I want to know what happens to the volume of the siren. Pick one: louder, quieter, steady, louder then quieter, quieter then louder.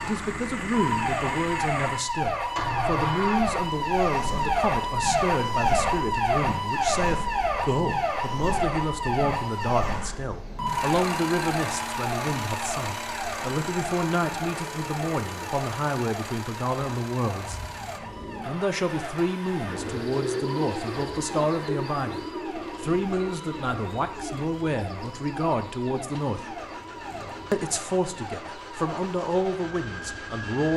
quieter.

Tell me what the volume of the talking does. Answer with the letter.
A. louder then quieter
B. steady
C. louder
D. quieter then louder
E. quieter
B.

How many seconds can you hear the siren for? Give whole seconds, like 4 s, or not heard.
31 s.